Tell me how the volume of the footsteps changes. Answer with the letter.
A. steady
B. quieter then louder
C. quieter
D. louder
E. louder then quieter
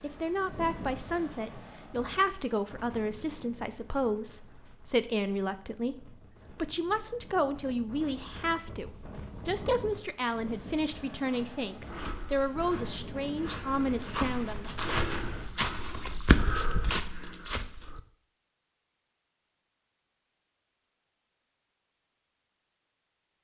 D.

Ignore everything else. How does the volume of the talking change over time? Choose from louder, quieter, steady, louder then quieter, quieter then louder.
steady.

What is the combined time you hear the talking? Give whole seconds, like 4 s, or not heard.
15 s.